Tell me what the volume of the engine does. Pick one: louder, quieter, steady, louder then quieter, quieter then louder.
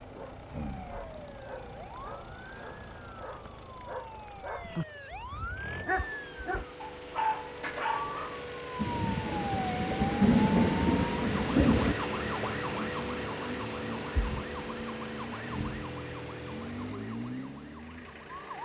louder then quieter.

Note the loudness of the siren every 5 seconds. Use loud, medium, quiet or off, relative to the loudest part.
medium, loud, loud, loud.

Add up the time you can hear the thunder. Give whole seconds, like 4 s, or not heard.
3 s.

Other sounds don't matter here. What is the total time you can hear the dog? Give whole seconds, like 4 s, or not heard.
8 s.